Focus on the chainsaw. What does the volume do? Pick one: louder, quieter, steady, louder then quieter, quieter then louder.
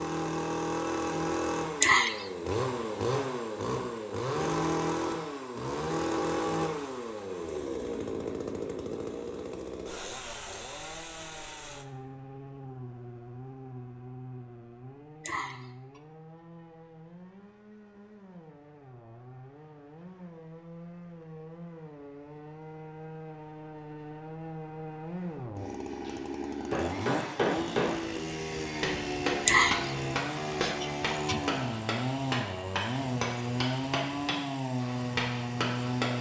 quieter then louder.